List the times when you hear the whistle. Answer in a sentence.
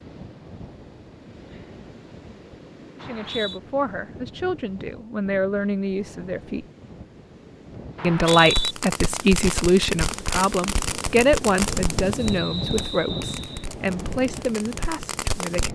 The whistle can be heard from 3.0 to 3.6 s, from 8.0 to 8.8 s and from 12.2 to 13.7 s.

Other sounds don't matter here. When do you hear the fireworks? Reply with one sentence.
You can hear the fireworks from 8.2 to 15.7 s.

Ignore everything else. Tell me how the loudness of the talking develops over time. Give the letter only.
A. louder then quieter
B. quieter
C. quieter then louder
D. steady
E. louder
A.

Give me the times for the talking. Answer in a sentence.
The talking can be heard from 3.0 to 6.7 s and from 8.0 to 15.7 s.